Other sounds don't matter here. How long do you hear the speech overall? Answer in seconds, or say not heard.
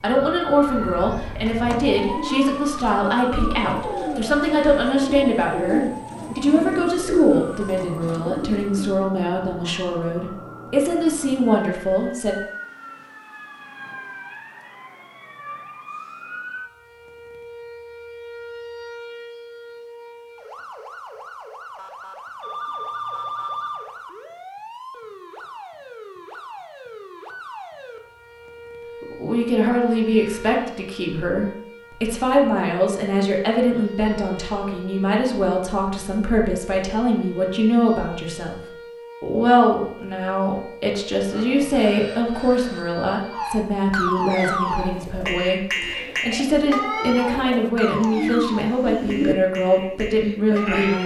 34 s.